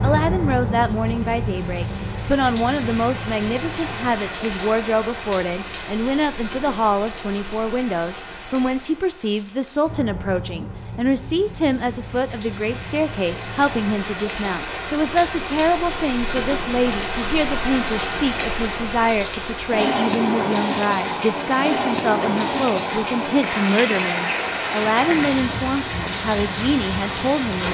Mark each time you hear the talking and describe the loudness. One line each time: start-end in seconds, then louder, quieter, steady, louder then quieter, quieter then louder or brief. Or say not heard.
0.0-27.6 steady.